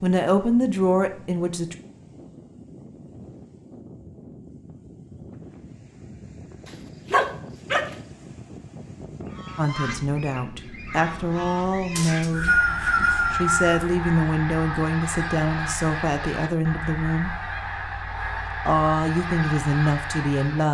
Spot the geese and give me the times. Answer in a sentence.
The geese can be heard from 9.2 to 20.6 s.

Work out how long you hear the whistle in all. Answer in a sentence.
You can hear the whistle for 2 seconds altogether.